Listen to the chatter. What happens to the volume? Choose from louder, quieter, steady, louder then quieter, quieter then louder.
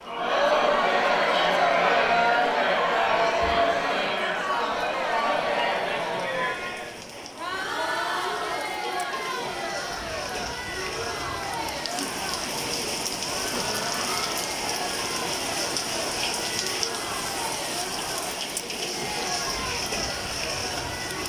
quieter.